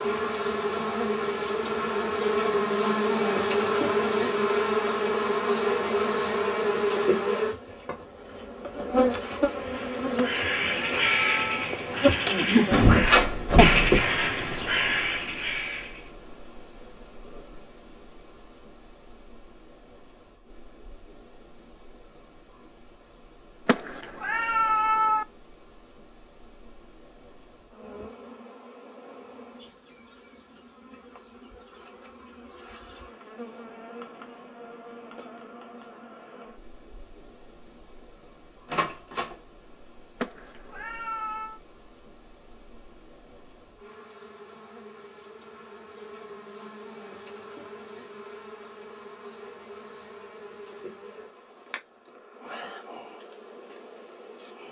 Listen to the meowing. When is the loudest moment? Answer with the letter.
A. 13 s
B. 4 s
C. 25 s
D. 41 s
C.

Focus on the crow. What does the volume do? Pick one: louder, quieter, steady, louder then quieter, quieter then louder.
louder then quieter.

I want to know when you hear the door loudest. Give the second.
13 s.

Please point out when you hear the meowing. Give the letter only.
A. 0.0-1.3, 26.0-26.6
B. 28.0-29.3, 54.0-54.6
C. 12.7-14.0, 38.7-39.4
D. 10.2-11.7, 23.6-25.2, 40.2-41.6
D.